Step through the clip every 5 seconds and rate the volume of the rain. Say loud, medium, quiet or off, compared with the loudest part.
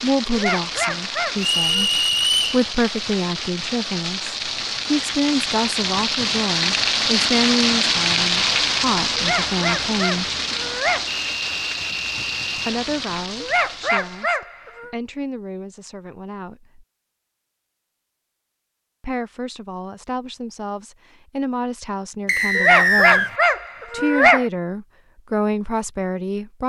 medium, loud, medium, off, off, off.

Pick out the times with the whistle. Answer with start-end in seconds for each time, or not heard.
1.4-2.6, 11.1-12.8, 22.2-23.3.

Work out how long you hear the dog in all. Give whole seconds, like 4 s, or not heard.
7 s.